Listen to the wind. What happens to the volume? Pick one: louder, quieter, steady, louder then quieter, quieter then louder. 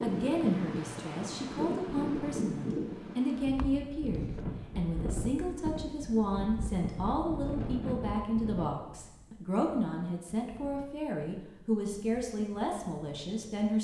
quieter.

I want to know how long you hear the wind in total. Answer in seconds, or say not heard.
14 s.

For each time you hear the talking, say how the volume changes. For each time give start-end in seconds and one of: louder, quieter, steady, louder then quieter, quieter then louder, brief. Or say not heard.
0.0-13.7 steady.